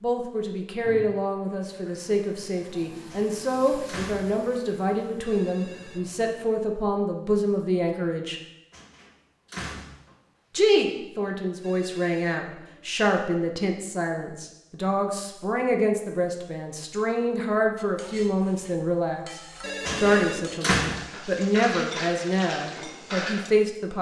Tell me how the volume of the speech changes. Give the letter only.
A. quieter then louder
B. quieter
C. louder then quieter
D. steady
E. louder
D.